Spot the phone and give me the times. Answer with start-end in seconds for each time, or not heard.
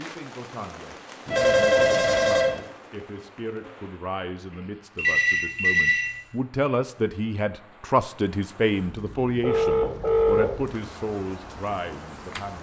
1.2-2.6, 5.0-6.2, 9.4-10.7.